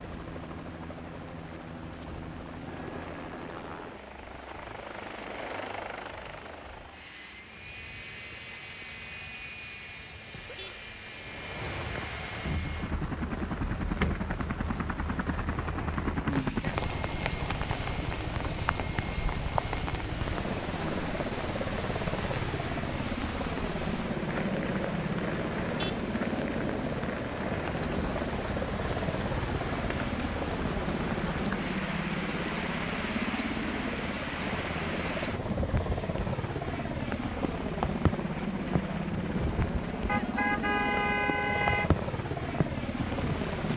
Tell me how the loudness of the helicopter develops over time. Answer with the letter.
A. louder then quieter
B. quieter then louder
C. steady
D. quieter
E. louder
E.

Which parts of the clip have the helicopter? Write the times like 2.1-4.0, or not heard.
0.0-43.7.